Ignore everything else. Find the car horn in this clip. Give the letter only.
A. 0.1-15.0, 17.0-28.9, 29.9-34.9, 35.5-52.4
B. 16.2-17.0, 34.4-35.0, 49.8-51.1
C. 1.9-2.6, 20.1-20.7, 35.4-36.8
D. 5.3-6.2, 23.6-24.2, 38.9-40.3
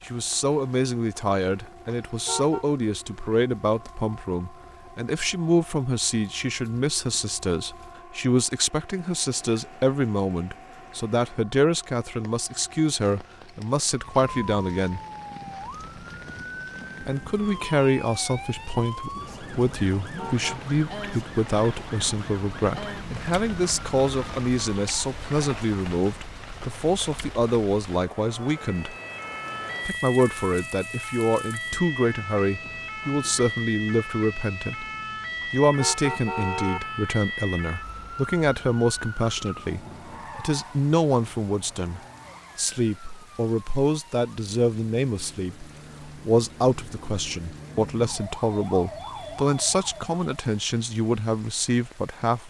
C.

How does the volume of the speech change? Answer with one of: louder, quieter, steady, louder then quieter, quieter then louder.
steady.